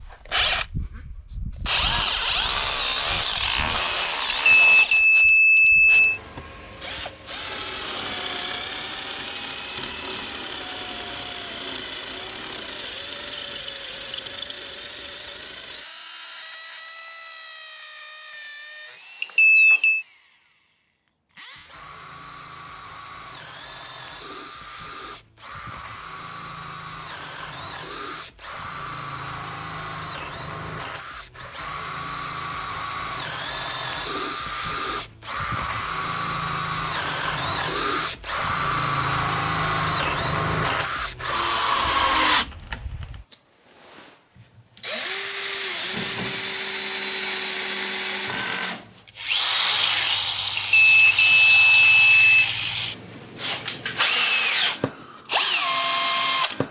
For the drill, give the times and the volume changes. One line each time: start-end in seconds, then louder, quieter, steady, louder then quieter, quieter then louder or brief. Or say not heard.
0.0-56.6 quieter then louder.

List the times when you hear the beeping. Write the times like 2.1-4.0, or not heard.
4.5-6.2, 19.2-20.1, 50.5-52.5.